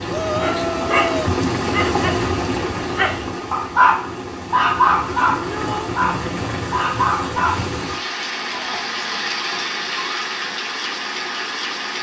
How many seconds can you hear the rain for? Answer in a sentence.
You can hear the rain for 12 seconds altogether.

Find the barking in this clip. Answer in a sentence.
You can hear the barking from 0.2 to 7.7 s.